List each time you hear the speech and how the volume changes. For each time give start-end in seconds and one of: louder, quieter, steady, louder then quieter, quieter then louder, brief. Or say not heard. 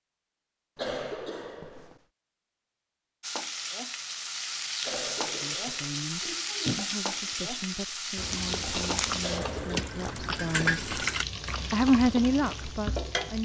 5.2-10.8 steady
11.7-13.4 brief.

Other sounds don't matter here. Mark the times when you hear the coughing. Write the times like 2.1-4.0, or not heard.
0.8-2.0, 4.8-6.3, 9.2-9.9.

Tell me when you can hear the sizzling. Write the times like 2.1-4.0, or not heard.
3.2-13.4.